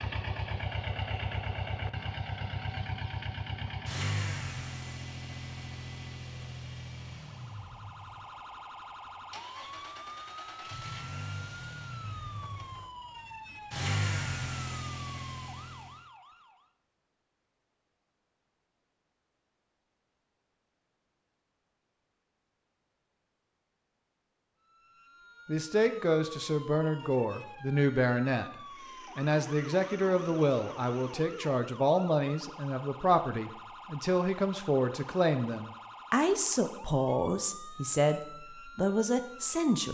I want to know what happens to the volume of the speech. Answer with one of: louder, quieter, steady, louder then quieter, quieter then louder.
steady.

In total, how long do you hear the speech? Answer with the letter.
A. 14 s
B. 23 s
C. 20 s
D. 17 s
A.